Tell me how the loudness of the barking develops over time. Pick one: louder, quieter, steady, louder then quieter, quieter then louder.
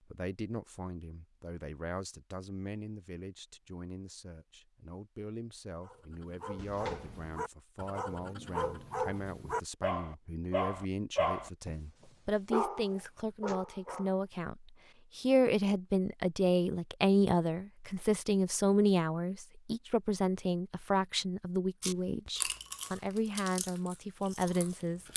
louder.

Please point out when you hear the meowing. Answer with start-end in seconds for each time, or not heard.
6.5-7.3.